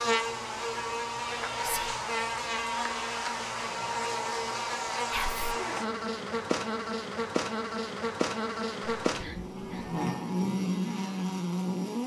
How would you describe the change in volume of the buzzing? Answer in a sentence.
The volume of the buzzing stays about the same.